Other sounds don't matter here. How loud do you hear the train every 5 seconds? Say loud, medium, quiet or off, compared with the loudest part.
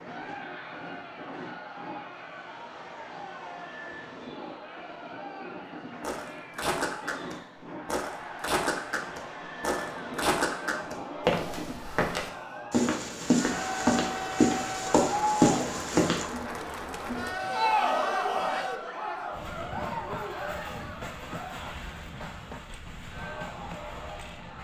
medium, medium, loud, loud, medium.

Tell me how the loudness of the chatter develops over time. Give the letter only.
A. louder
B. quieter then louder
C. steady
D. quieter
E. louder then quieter
E.